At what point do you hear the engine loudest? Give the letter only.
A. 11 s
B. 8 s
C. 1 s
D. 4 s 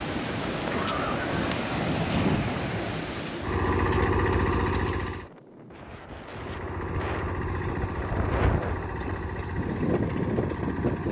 D.